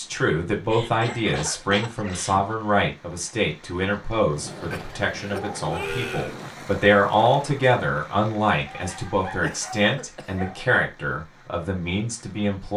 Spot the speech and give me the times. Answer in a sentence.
The speech can be heard from 0.0 to 12.7 s.